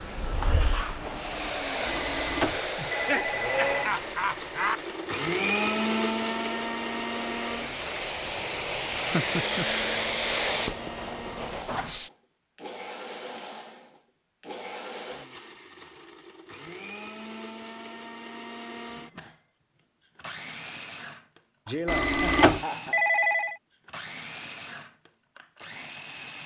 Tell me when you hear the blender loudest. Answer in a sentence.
The loudest moment of the blender is at 6 seconds.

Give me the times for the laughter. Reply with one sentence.
The laughter can be heard from 2.8 to 4.8 s, from 8.9 to 9.8 s and from 21.6 to 22.9 s.